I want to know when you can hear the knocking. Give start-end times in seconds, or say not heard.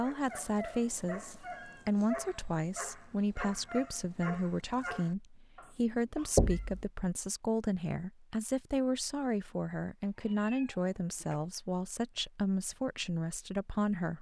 6.3-6.8.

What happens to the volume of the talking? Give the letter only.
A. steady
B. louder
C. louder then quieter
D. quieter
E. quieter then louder
A.